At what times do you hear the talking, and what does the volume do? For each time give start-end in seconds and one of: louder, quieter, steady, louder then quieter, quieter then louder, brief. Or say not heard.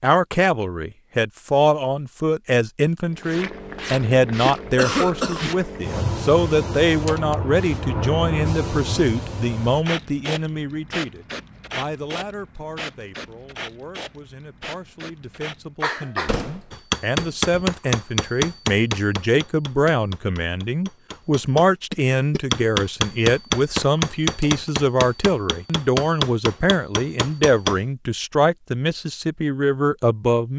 0.0-30.5 quieter then louder.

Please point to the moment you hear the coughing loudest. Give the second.
5 s.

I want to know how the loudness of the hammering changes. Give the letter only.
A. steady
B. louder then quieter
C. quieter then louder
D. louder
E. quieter
C.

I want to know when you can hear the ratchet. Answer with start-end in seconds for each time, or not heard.
not heard.